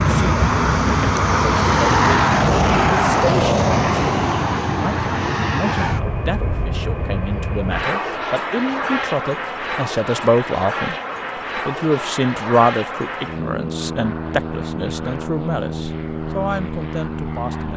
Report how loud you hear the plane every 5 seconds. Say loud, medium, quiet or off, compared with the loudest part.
loud, medium, medium, medium.